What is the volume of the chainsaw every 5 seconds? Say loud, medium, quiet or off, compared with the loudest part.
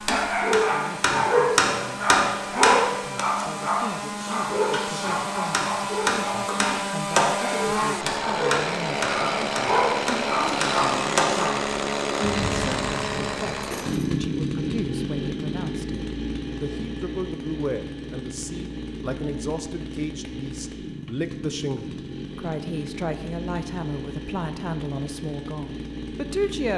medium, loud, loud, medium, medium, medium.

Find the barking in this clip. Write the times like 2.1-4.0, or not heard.
0.1-11.5.